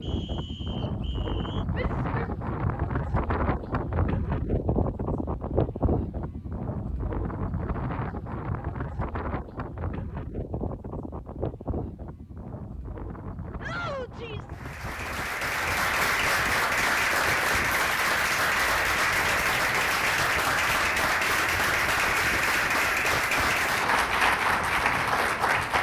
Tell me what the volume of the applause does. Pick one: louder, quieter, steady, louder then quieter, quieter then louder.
steady.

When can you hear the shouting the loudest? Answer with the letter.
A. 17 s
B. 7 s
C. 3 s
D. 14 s
D.